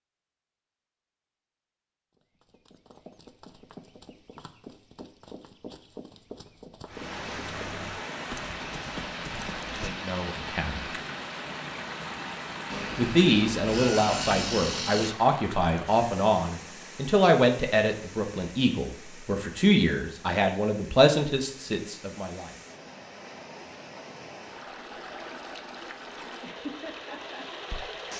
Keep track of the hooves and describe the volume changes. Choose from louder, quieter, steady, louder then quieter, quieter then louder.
louder.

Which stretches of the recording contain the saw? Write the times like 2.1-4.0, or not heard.
12.7-15.2.